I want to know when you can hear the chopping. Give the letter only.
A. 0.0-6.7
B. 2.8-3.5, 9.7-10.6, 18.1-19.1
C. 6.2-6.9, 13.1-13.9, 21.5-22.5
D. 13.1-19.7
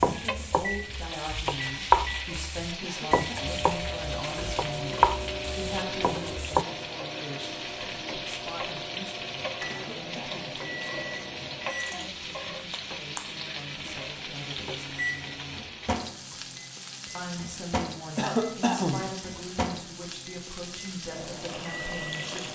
A.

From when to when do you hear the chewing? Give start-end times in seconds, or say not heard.
not heard.